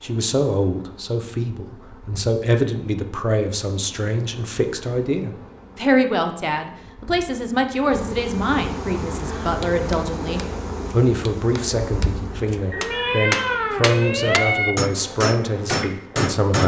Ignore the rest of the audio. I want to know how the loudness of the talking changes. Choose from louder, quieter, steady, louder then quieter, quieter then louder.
steady.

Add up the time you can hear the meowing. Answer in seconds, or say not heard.
2 s.